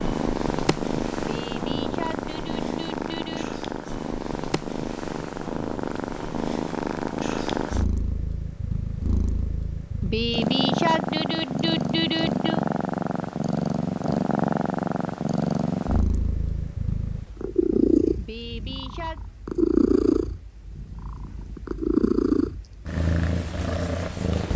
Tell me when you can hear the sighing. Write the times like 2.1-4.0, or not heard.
1.1-3.5, 10.0-12.6, 18.1-19.2.